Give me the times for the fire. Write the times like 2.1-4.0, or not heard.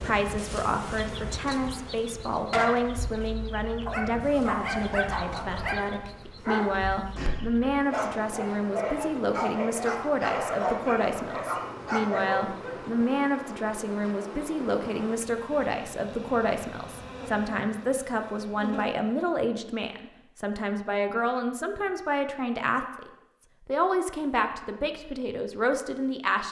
not heard.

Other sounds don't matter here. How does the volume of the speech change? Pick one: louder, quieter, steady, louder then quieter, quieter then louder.
steady.